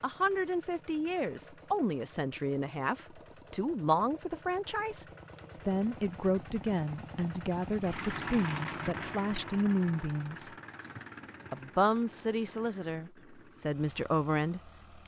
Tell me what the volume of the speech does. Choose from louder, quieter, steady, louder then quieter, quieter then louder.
steady.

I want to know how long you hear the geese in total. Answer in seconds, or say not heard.
not heard.